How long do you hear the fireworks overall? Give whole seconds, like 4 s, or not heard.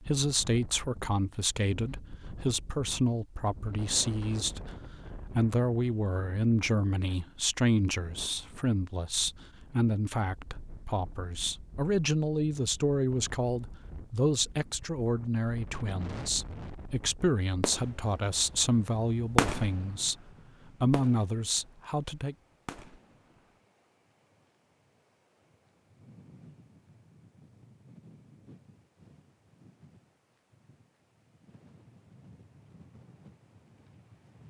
4 s.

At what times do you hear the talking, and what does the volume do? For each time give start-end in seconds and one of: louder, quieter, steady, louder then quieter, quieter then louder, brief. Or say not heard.
0.0-4.6 steady
5.2-20.1 steady
20.8-22.4 brief.